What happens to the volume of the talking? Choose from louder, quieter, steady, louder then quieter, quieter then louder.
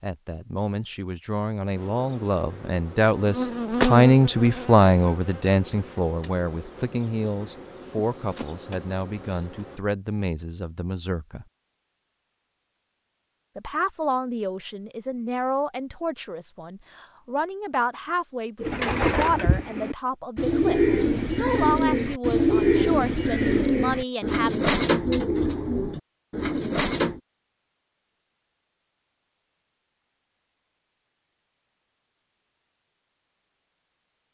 quieter.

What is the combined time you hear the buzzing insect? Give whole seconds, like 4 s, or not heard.
8 s.